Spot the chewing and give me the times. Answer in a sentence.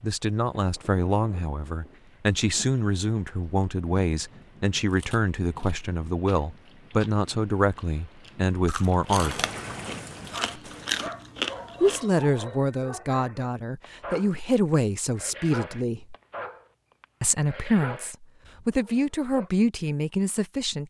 The chewing can be heard from 4.9 to 12.1 s.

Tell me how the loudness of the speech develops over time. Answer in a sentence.
The volume of the speech stays about the same.